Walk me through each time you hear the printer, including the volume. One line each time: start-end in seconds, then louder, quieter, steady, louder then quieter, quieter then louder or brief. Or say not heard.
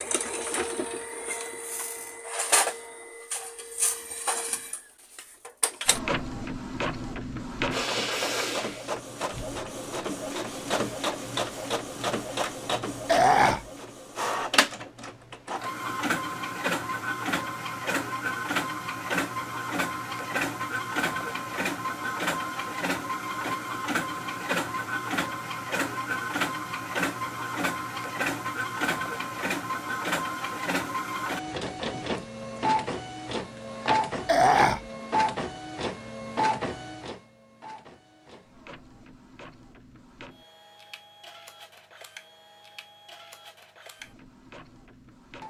0.0-45.4 quieter.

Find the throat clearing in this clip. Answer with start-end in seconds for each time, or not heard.
13.1-13.6, 34.2-34.8.